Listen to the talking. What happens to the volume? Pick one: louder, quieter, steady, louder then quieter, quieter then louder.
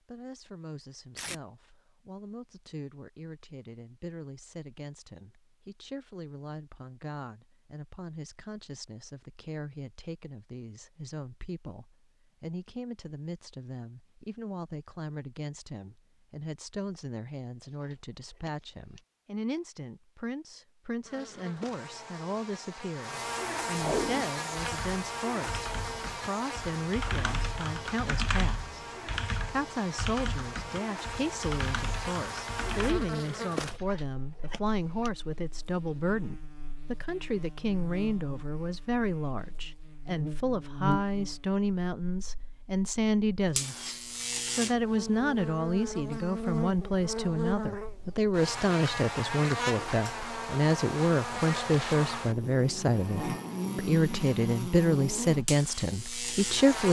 louder.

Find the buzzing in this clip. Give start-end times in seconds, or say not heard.
21.1-56.8.